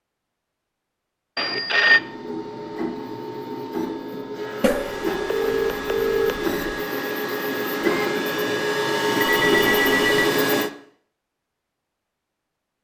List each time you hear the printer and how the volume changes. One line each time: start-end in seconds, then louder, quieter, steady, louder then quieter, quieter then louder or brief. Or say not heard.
1.8-10.7 louder.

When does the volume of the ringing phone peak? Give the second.
2 s.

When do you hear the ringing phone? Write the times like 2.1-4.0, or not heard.
1.4-2.0, 4.6-6.5, 9.2-10.3.